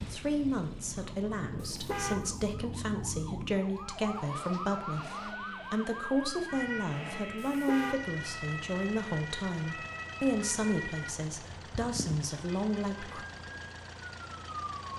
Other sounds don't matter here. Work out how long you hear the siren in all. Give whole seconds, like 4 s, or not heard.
15 s.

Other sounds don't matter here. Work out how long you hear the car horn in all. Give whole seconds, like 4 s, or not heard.
2 s.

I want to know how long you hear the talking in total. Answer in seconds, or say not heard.
13 s.